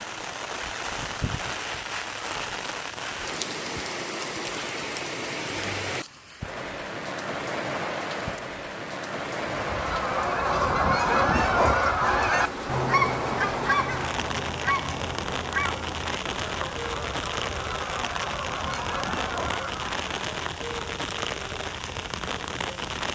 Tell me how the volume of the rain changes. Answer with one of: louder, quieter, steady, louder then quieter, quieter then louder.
steady.